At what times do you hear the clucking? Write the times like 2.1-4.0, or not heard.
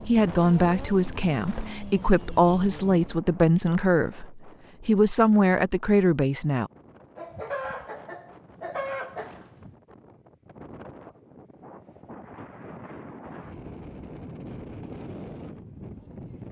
7.2-9.8.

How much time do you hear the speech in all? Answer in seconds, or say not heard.
7 s.